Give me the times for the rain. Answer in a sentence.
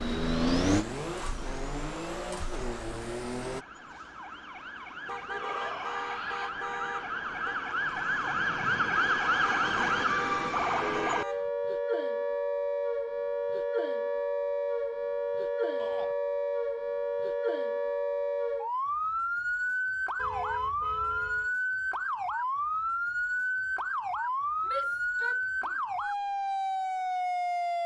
The rain can't be heard in this clip.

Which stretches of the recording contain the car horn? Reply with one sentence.
The car horn can be heard from 5.0 to 7.6 s, from 9.4 to 11.5 s and from 20.1 to 21.5 s.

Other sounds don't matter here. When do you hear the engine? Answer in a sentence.
You can hear the engine from 0.0 to 3.6 s.